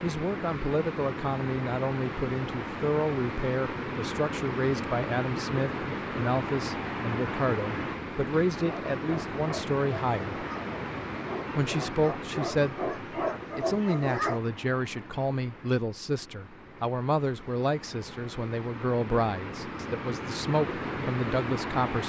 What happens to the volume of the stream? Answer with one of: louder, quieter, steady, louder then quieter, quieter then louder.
quieter then louder.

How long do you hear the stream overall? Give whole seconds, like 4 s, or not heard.
22 s.